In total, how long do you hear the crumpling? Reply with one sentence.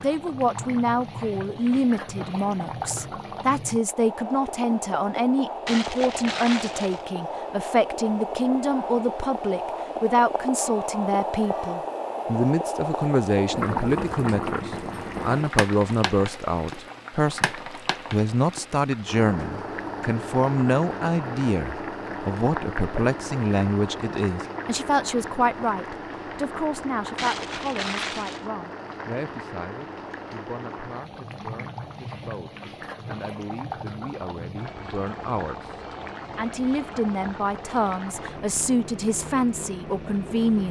You can hear the crumpling for 3 seconds altogether.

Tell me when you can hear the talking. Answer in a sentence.
The talking can be heard from 0.0 to 40.6 s.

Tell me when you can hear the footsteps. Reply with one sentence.
You can't hear the footsteps here.